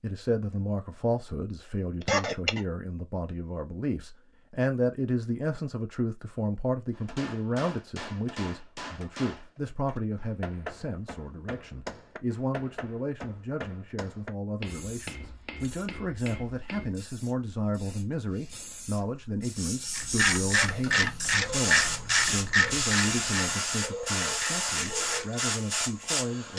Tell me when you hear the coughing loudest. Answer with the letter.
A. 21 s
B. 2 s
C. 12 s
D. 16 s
B.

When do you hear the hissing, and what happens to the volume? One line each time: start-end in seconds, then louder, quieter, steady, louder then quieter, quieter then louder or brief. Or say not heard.
14.7-26.5 louder.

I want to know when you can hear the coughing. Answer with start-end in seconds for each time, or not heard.
2.0-2.6, 20.4-21.0.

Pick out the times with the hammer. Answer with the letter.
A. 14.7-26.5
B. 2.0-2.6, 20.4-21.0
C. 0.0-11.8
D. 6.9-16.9
D.